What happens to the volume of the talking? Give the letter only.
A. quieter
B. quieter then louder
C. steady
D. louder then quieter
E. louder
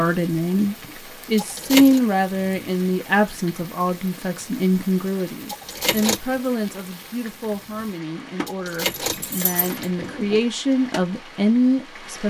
B.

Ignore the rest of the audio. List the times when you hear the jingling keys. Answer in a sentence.
You can hear the jingling keys from 1.4 to 2.0 s, from 5.5 to 6.2 s and from 8.4 to 10.4 s.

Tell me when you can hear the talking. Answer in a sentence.
You can hear the talking from 0.0 to 12.2 s.